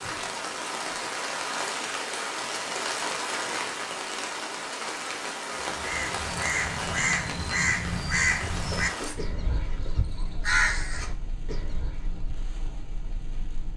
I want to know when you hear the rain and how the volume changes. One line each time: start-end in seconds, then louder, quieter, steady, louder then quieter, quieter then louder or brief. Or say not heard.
0.0-13.7 quieter.